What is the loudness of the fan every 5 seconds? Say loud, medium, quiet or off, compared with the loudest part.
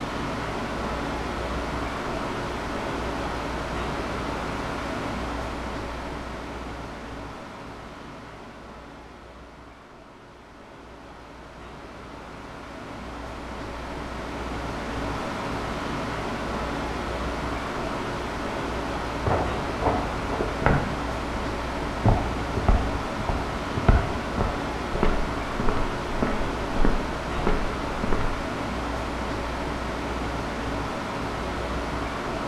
loud, medium, medium, loud, loud, loud, loud.